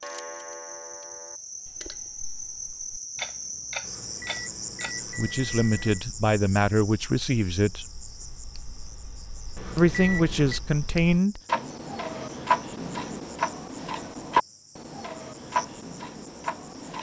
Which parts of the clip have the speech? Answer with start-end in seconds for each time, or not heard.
5.2-8.0, 9.8-11.4.